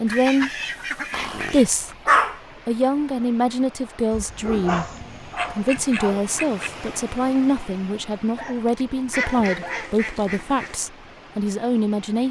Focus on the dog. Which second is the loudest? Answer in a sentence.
The volume of the dog peaks at 2 seconds.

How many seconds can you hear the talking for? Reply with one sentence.
The talking can be heard for 11 seconds in total.